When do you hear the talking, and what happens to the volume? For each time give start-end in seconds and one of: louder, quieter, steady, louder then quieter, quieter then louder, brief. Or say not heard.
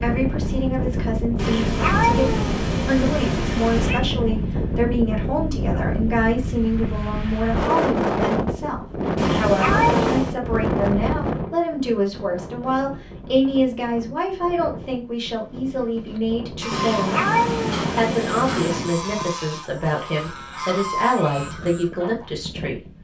0.0-17.3 steady
17.9-22.8 steady.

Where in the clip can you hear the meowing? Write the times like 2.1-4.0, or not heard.
1.4-4.0, 9.2-10.3, 16.7-18.9.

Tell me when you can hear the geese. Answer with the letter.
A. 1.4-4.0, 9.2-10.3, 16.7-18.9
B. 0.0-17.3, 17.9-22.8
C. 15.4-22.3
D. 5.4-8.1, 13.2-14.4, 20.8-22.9
C.